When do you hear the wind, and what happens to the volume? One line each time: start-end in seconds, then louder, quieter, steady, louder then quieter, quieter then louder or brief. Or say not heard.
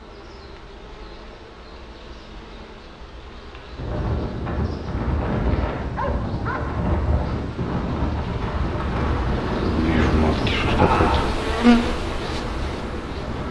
3.7-13.4 quieter.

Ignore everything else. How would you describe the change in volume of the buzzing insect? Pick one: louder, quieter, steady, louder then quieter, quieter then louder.
louder.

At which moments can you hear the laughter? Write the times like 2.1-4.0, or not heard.
10.7-11.4.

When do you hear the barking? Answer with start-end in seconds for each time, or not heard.
6.0-6.6.